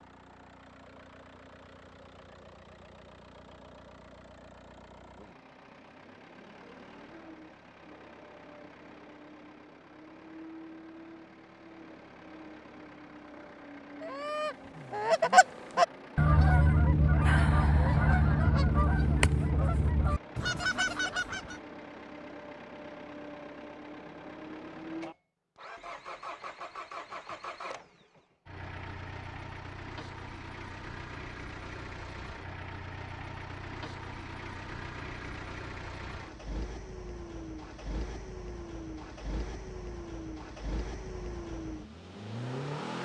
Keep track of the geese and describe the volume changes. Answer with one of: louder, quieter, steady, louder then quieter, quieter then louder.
quieter.